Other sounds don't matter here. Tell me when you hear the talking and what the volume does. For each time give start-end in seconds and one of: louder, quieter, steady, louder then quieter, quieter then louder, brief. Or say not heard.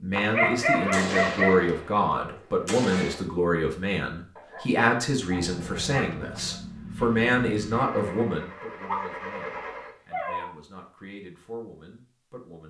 0.0-12.6 quieter.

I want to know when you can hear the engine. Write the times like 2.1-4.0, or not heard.
5.2-9.9.